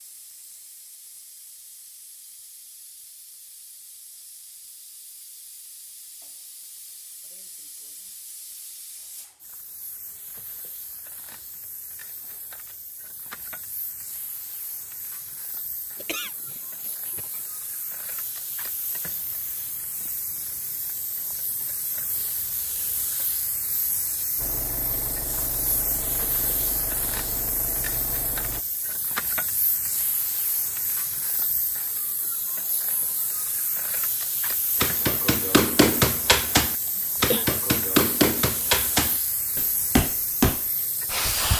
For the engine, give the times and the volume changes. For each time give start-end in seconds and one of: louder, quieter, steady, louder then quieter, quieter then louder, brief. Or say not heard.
24.4-28.6 steady.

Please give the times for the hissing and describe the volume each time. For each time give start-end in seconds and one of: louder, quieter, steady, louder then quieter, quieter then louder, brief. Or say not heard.
0.0-41.5 louder.